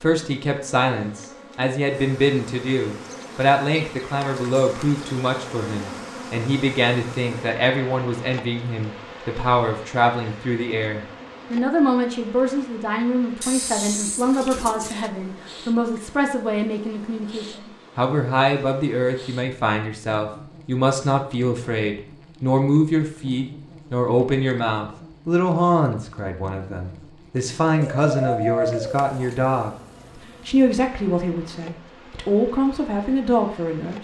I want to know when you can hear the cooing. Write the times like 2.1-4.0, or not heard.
13.4-15.1, 27.8-29.4.